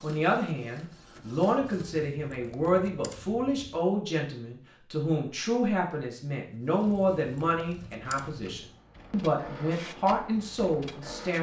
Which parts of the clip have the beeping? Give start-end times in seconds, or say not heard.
not heard.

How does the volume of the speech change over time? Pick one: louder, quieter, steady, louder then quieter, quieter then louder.
steady.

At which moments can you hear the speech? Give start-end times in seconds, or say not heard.
0.0-11.3.